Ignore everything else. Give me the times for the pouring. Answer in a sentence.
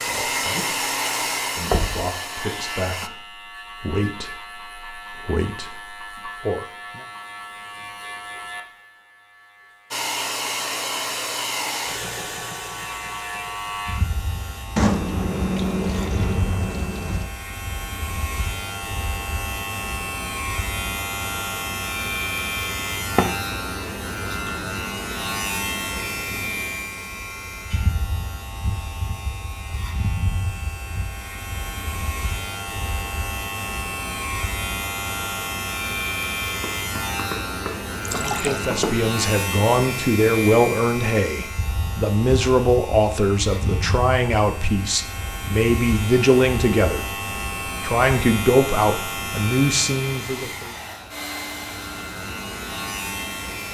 You can hear the pouring from 14.8 to 17.3 s and from 38.0 to 38.6 s.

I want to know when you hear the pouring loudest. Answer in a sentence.
The loudest moment of the pouring is at 15 seconds.